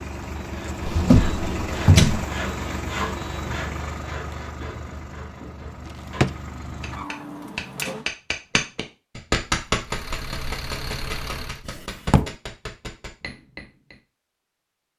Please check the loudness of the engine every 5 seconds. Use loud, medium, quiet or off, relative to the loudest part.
loud, medium, loud.